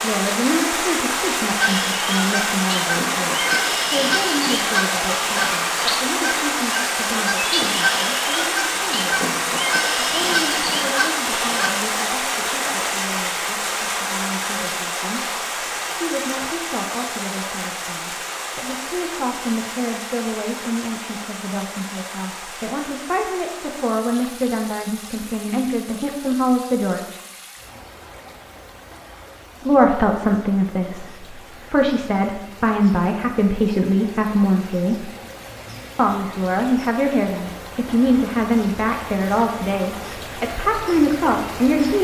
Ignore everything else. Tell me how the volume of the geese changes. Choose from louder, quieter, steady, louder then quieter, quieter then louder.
steady.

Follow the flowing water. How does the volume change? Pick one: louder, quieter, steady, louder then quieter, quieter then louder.
quieter then louder.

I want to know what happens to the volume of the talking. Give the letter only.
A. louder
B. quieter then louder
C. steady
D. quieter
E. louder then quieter
B.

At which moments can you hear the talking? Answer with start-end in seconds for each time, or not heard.
0.0-27.2, 29.6-35.1, 36.0-41.9.